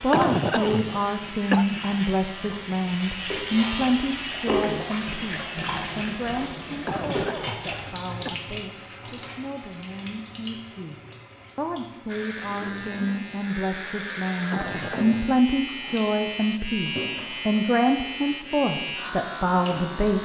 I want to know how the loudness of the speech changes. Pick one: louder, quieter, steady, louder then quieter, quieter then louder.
quieter then louder.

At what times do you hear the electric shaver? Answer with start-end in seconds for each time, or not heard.
0.0-5.6, 12.1-20.2.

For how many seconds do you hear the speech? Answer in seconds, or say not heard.
20 s.